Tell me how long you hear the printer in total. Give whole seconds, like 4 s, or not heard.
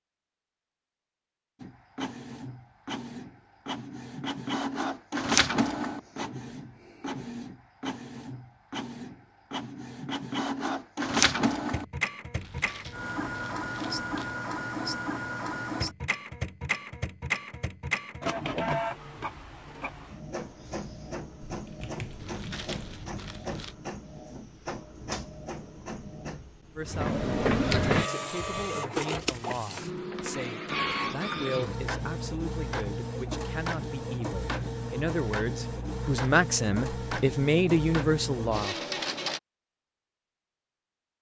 38 s.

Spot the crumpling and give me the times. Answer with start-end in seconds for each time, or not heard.
12.3-14.3, 22.1-23.8.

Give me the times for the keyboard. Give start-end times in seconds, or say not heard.
21.4-22.9.